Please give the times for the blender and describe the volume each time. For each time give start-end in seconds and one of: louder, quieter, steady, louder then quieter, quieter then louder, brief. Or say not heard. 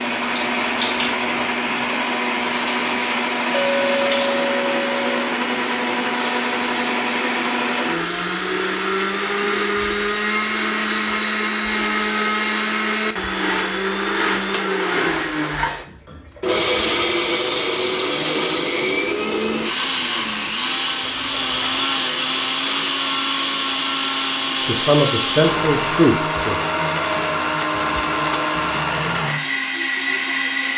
0.0-30.7 steady.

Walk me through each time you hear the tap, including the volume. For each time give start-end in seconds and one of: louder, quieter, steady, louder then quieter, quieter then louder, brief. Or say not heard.
0.0-11.5 steady.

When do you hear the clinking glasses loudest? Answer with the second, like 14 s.
4 s.